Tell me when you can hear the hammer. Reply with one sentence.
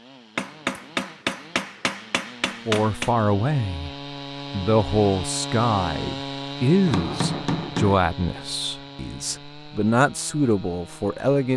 You can hear the hammer from 0.3 to 3.1 s and from 6.8 to 8.0 s.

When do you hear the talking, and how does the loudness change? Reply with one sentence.
The talking can be heard briefly from 2.6 to 3.9 s; and from 4.5 to 11.5 s, getting quieter then louder.